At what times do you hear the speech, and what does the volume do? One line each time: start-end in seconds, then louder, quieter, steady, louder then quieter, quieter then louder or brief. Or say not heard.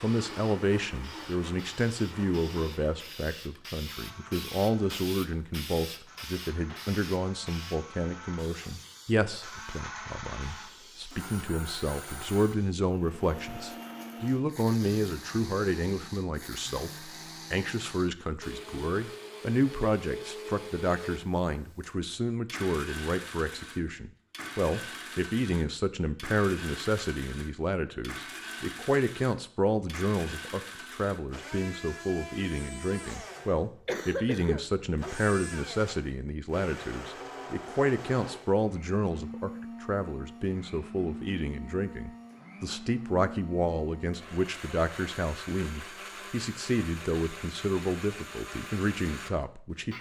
0.0-49.9 steady.